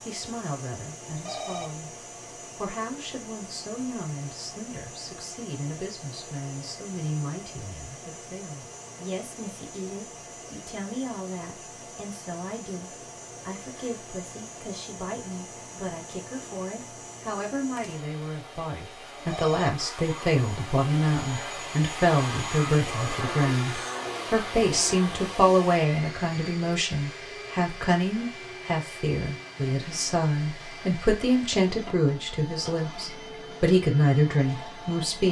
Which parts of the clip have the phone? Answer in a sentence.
You can hear the phone from 1.1 to 1.8 s and from 19.1 to 19.8 s.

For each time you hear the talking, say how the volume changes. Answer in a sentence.
The talking can be heard briefly from 0.0 to 1.9 s; and from 2.5 to 35.2 s, getting louder.